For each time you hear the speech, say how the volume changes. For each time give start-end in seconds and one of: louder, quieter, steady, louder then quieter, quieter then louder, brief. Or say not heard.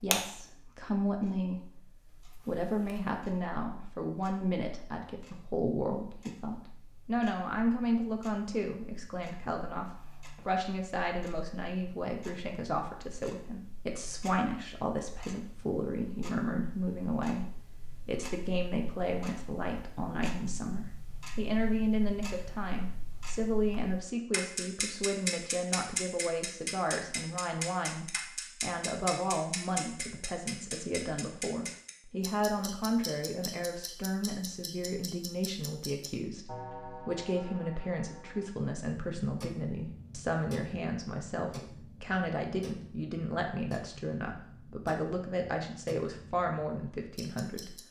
0.0-1.6 brief
2.5-47.8 steady.